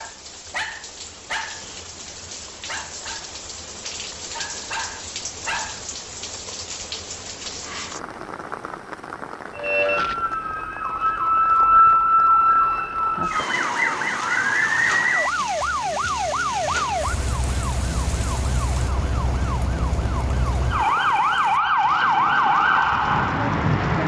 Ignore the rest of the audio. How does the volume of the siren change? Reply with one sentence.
The loudness of the siren goes down, then up.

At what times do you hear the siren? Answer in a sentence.
You can hear the siren from 9.6 to 24.0 s.